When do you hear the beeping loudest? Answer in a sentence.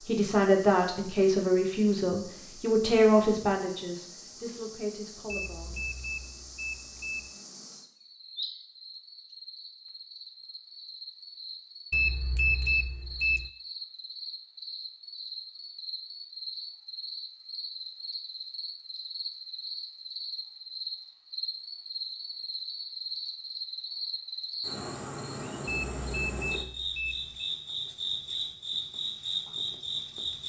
The loudest moment of the beeping is at 13 seconds.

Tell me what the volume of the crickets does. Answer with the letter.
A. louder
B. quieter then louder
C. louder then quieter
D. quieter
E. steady
A.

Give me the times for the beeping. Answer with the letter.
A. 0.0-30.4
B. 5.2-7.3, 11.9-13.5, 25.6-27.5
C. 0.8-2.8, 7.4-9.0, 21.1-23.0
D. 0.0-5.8
B.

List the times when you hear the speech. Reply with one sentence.
The speech can be heard from 0.0 to 5.8 s.